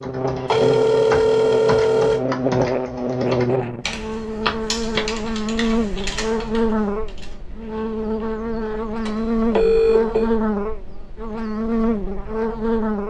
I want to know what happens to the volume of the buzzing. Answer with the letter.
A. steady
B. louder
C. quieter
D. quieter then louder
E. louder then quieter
A.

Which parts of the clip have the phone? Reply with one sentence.
The phone can be heard from 0.5 to 2.2 s, from 4.5 to 5.0 s and from 9.1 to 10.3 s.